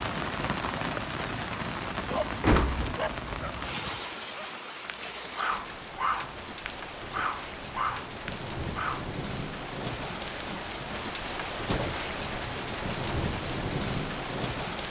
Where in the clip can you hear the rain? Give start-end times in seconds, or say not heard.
0.0-14.8.